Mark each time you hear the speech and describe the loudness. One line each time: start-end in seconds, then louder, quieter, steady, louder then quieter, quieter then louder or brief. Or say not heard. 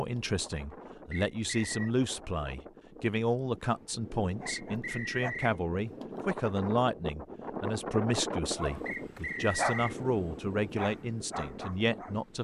0.0-12.3 steady.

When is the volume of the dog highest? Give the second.
10 s.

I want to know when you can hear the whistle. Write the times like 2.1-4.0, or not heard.
1.1-1.9, 4.5-5.5, 8.8-9.9.